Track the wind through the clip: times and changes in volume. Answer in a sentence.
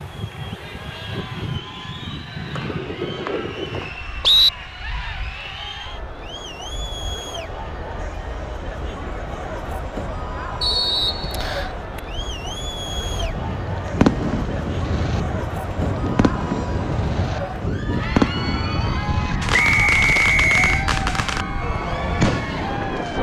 You can hear the wind from 0.0 to 23.1 s, getting quieter then louder.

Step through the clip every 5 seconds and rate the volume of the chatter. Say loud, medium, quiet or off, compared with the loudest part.
medium, loud, loud, loud, loud.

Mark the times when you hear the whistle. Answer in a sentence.
You can hear the whistle from 2.5 to 4.5 s, from 10.6 to 11.7 s and from 19.5 to 20.9 s.